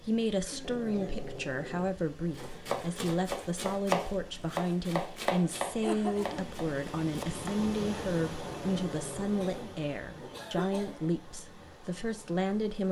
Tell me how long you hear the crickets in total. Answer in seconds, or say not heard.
not heard.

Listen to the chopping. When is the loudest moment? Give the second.
4 s.